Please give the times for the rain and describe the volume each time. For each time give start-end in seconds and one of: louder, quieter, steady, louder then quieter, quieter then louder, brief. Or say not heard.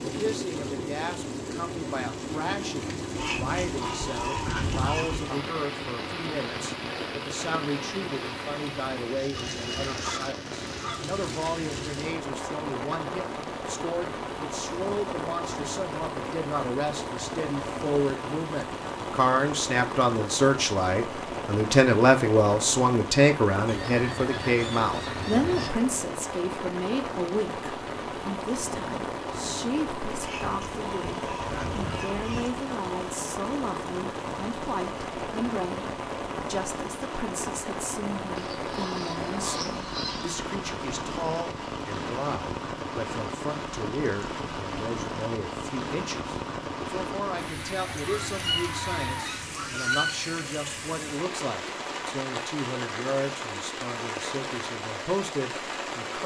0.0-56.2 steady.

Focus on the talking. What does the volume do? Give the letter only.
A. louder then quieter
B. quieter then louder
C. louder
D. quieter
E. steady
A.